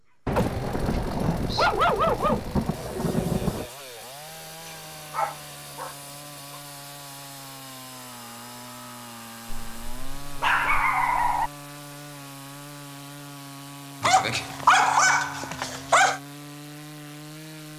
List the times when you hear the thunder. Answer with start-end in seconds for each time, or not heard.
0.2-3.7.